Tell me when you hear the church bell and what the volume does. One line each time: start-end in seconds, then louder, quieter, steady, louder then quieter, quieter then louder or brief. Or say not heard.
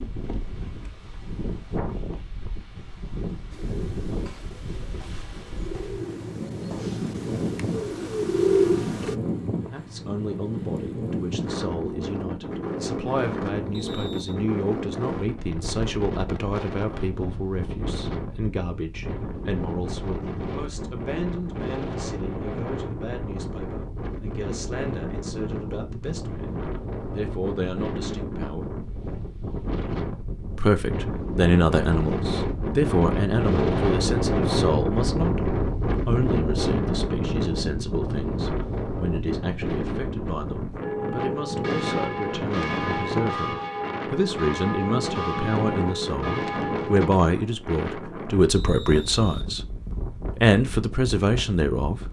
40.8-47.1 steady.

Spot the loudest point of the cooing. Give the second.
9 s.